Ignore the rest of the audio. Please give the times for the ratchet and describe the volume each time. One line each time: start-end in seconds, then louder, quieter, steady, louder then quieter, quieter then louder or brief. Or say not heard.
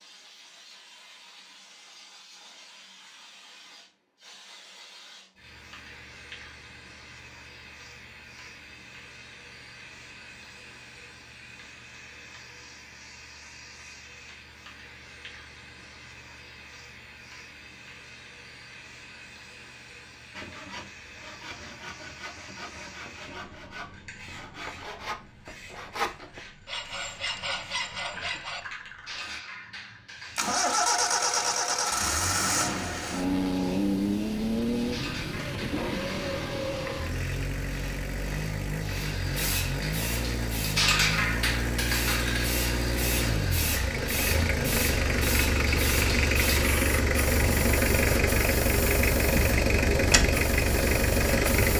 not heard.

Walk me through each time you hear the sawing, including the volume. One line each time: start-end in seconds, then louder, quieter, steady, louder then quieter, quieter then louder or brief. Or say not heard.
20.3-28.6 louder.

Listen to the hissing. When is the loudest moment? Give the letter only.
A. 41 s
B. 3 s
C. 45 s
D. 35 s
A.